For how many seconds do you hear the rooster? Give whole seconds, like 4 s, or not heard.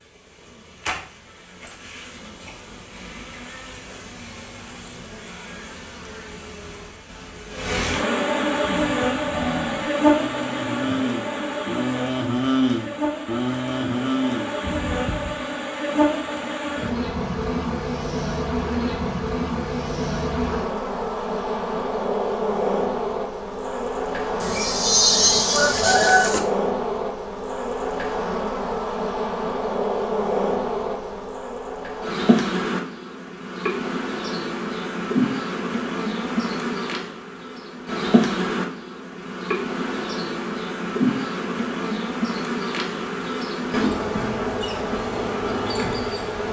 2 s.